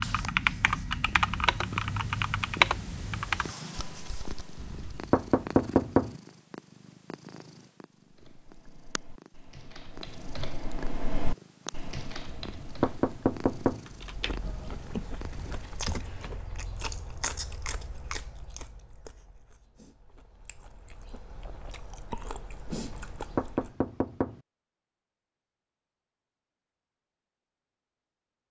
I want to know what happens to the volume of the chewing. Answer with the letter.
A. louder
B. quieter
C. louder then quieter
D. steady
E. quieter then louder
E.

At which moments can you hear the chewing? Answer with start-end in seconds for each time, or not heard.
13.9-23.8.